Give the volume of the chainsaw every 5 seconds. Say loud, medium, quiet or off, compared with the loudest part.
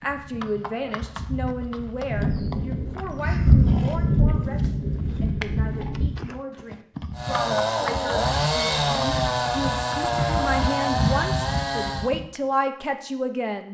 off, loud, loud.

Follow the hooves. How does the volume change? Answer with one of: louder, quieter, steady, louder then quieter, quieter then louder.
louder.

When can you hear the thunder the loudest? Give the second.
4 s.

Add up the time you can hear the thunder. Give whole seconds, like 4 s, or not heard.
4 s.